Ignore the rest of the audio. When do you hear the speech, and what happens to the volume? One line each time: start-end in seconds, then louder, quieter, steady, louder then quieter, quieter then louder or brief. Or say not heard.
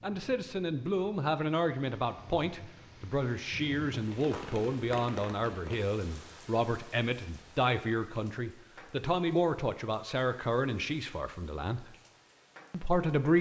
0.0-11.8 steady
12.7-13.3 brief.